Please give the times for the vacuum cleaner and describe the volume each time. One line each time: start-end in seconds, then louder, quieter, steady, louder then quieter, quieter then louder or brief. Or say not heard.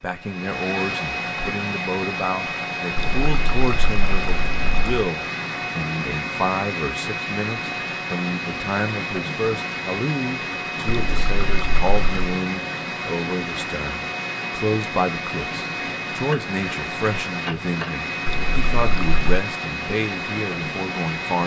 0.0-21.4 steady.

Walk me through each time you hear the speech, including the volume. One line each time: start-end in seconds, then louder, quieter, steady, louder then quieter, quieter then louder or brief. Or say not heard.
0.0-21.4 steady.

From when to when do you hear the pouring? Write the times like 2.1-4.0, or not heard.
3.0-5.0, 10.8-12.3, 18.2-19.2.